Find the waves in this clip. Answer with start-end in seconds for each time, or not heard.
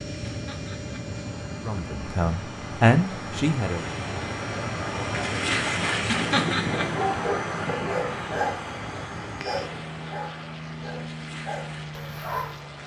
0.0-12.8.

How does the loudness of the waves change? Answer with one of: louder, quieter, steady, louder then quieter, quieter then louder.
louder then quieter.